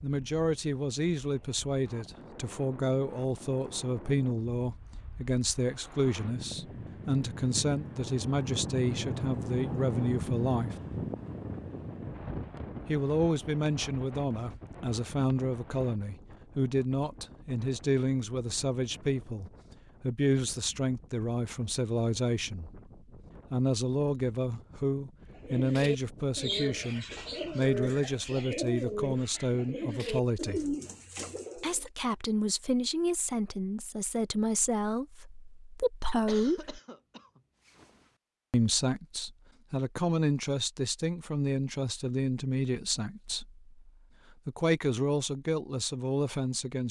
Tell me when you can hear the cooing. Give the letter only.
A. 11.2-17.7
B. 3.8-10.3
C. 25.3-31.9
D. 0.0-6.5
C.